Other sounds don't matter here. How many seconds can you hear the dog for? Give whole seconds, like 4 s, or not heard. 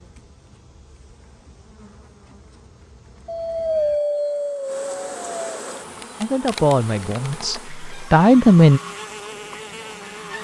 2 s.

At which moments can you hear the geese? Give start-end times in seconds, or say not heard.
not heard.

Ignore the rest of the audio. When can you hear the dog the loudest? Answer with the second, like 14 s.
4 s.